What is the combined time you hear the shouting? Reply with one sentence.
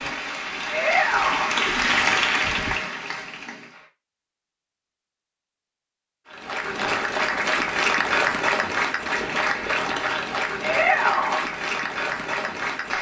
The shouting can be heard for 2 seconds in total.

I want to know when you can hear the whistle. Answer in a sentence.
You can't hear the whistle here.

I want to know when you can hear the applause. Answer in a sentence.
You can hear the applause from 0.0 to 3.9 s and from 6.2 to 12.9 s.